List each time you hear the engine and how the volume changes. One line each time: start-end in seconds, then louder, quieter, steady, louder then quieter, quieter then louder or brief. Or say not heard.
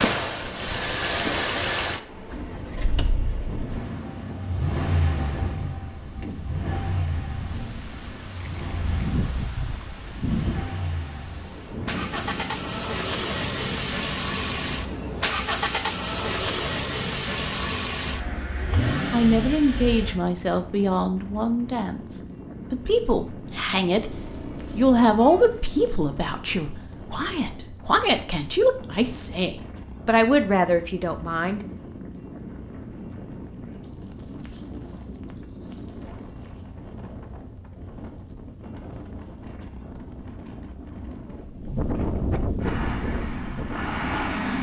0.0-20.2 quieter then louder
42.5-44.5 brief.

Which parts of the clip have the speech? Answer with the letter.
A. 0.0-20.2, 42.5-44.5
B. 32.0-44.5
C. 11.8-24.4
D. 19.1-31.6
D.